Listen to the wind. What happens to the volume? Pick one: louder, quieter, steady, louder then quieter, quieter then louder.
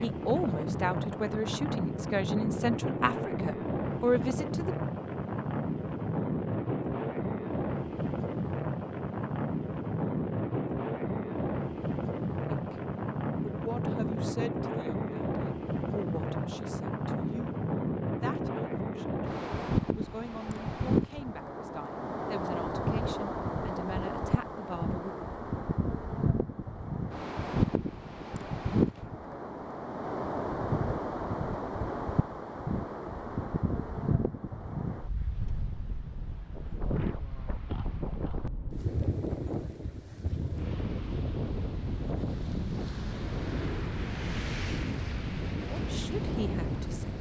steady.